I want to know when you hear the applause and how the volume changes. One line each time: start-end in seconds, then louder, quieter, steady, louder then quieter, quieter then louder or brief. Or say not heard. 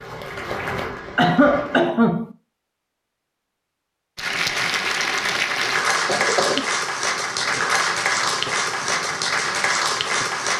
0.0-1.9 brief
4.2-10.5 steady.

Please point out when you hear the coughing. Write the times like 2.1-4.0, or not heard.
1.1-2.4, 6.0-6.7.